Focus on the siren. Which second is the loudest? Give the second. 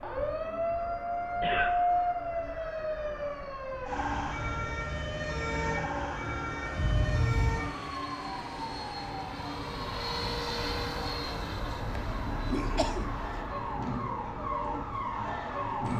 2 s.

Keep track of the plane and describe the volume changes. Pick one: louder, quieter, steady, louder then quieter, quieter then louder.
louder then quieter.